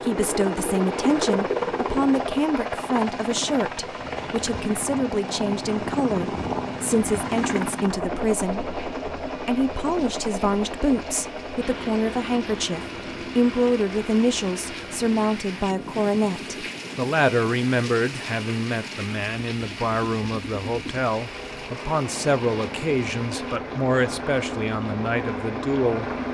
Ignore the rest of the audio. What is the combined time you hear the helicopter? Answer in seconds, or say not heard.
26 s.